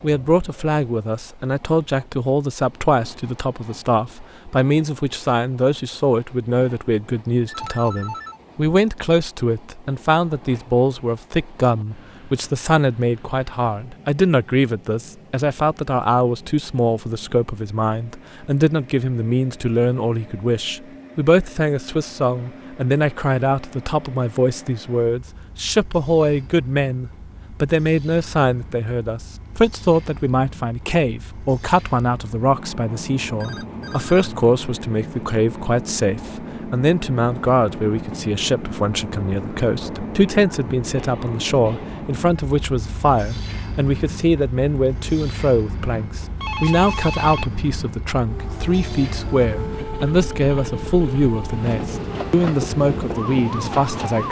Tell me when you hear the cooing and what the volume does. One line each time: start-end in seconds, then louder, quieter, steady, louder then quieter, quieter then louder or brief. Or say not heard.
not heard.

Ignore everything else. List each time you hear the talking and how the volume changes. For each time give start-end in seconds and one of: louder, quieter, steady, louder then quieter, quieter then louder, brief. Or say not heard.
0.0-54.2 steady.